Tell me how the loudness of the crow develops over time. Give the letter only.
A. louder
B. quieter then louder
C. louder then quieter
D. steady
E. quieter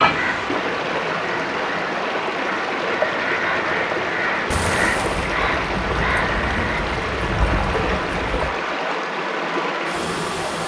A.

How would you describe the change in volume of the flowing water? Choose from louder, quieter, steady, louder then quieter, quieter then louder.
steady.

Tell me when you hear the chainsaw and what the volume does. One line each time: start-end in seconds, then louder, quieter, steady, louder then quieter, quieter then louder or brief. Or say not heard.
not heard.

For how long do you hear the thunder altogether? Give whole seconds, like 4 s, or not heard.
4 s.